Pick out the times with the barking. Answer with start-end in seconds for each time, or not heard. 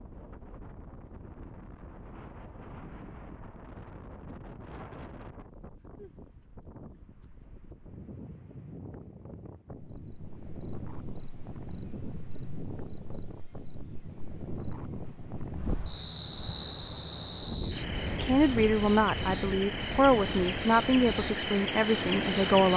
not heard.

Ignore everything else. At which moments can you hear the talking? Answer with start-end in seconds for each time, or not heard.
18.2-22.7.